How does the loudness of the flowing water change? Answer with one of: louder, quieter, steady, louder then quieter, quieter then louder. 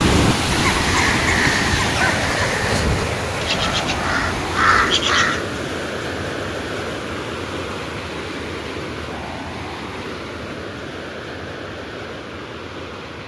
quieter.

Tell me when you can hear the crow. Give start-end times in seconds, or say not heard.
0.0-5.5.